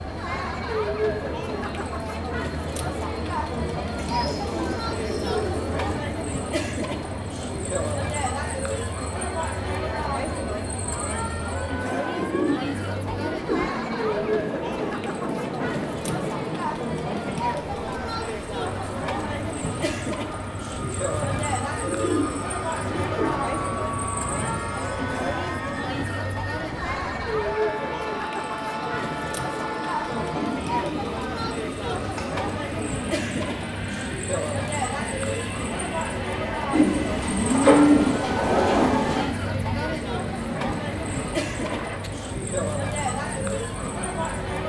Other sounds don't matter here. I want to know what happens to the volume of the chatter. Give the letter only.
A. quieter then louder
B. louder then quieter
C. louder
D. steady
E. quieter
D.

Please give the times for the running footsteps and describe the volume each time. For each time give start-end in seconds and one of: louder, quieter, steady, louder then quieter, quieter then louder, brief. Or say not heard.
not heard.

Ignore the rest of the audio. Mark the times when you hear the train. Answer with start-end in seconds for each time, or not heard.
0.0-44.6.